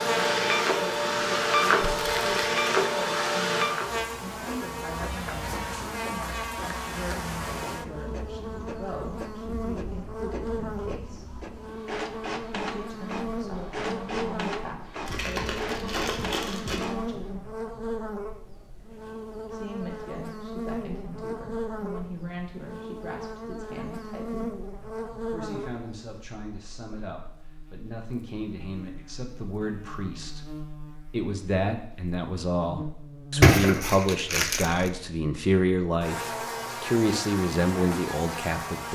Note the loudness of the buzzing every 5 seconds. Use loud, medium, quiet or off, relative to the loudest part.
loud, loud, loud, loud, loud, medium, loud, loud.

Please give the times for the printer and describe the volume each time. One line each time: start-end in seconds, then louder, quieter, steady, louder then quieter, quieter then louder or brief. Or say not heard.
0.0-17.3 quieter then louder.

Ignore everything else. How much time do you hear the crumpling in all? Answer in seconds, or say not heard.
4 s.